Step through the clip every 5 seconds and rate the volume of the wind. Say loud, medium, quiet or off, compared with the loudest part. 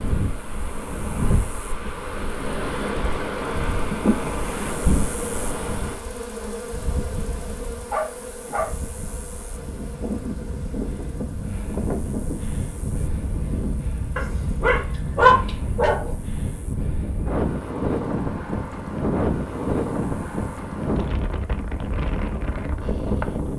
loud, medium, medium, loud, loud.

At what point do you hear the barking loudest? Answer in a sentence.
The volume of the barking peaks at 15 seconds.